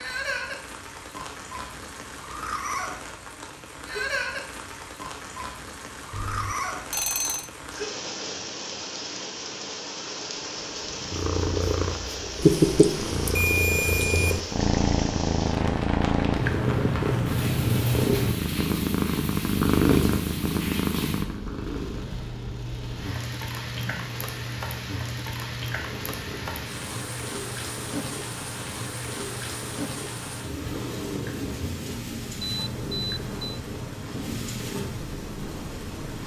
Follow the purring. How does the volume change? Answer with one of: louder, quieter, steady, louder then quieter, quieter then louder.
quieter.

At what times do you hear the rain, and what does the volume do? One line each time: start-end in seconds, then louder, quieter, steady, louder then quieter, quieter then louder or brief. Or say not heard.
0.0-36.2 steady.